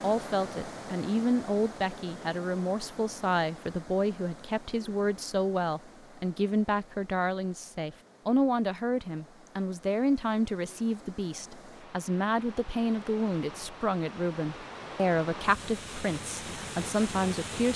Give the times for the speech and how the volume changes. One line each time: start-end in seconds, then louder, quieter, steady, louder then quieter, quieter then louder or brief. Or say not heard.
0.0-17.7 steady.